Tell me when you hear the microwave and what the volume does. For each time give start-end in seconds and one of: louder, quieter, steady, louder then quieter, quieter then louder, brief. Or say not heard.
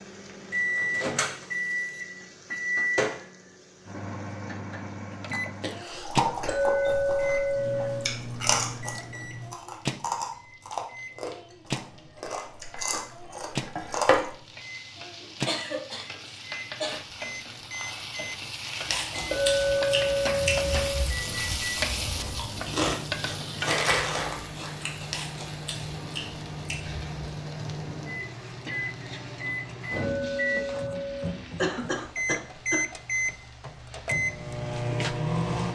0.0-35.7 quieter then louder.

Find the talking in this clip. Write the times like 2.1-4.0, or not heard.
not heard.